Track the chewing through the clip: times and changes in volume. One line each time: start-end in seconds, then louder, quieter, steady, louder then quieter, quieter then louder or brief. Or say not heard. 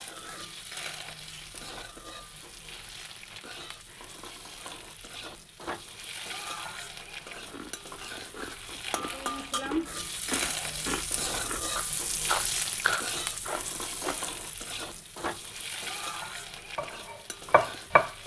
7.3-14.2 louder.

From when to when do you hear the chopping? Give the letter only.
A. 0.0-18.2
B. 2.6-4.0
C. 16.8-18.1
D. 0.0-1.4
C.